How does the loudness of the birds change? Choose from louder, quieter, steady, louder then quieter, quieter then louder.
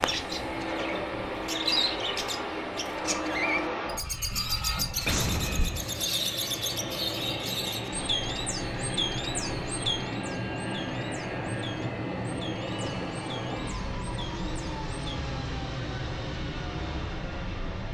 quieter.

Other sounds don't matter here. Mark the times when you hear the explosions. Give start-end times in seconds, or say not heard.
5.0-6.2.